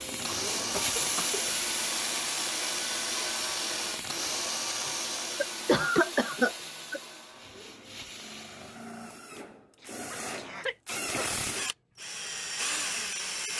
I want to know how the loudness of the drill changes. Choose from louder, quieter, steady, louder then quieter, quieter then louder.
quieter then louder.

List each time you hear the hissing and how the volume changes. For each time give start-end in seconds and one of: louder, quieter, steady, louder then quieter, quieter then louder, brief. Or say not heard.
0.0-8.9 quieter.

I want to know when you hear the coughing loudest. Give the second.
6 s.